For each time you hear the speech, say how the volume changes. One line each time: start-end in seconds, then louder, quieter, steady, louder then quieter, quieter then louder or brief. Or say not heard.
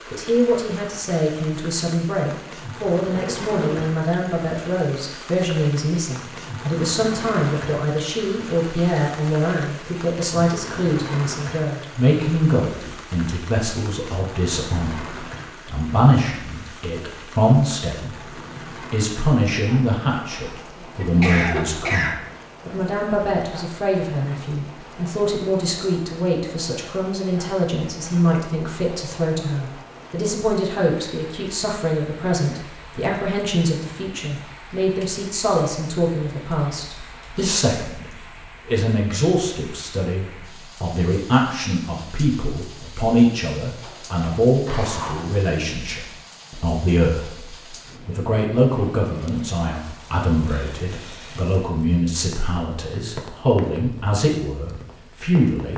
0.1-18.3 steady
18.9-55.7 steady.